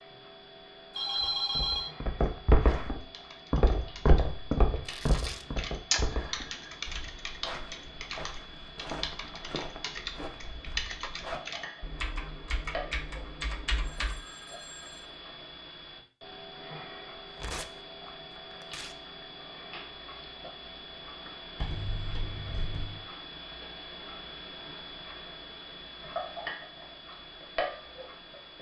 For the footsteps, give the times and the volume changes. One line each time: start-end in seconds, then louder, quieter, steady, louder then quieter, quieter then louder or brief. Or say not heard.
1.1-11.4 quieter.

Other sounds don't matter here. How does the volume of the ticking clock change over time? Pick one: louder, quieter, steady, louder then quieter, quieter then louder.
louder.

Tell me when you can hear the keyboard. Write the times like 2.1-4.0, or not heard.
3.0-14.2.